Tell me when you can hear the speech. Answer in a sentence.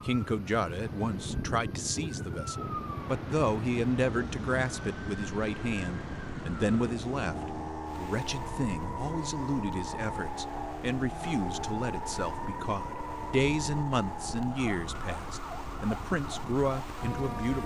You can hear the speech from 0.0 to 17.6 s.